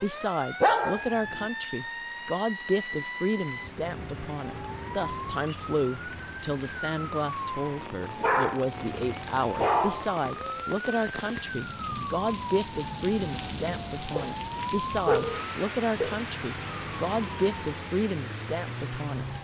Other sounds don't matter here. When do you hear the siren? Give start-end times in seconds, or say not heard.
0.0-19.3.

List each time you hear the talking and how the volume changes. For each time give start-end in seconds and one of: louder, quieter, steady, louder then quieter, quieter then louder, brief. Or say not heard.
0.0-19.3 steady.